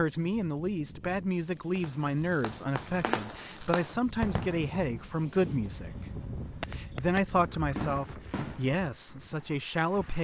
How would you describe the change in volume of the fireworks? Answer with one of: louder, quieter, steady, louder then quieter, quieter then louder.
quieter then louder.